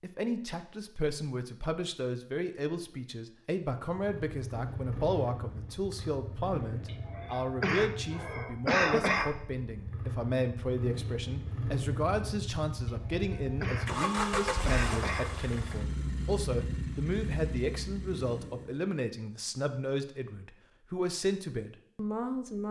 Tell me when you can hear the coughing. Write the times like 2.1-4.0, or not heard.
6.8-9.3, 12.8-15.3.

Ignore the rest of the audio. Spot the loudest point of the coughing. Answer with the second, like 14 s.
9 s.